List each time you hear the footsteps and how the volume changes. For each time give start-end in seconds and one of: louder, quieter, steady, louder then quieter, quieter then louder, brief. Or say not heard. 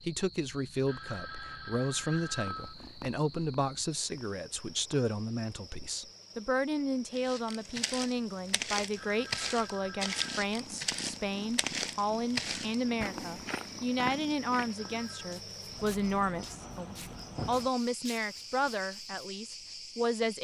7.1-19.2 quieter.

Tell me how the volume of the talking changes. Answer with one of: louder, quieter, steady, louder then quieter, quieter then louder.
steady.